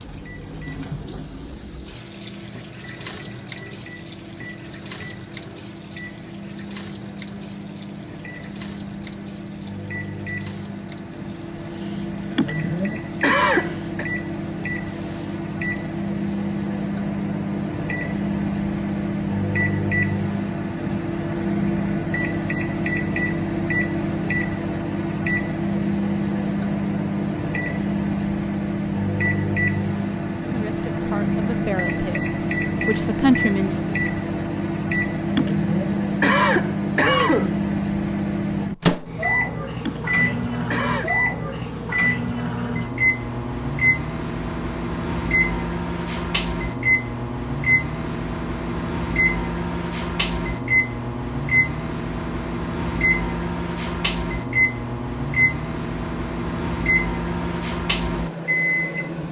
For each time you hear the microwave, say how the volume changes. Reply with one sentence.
You can hear the microwave from 0.0 to 59.2 s, getting louder.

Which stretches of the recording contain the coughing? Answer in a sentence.
The coughing can be heard from 12.3 to 14.1 s, from 35.3 to 37.6 s and from 39.8 to 41.1 s.